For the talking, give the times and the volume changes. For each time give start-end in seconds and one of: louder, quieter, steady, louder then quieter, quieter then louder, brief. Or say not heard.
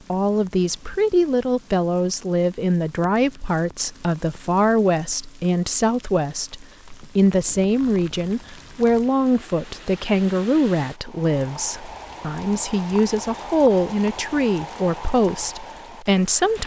0.1-16.6 steady.